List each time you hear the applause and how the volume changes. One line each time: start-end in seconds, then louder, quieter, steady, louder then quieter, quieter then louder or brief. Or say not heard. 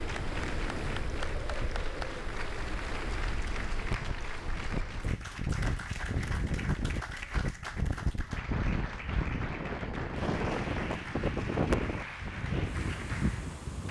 0.0-13.8 steady.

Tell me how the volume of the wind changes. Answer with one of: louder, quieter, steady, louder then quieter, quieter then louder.
louder.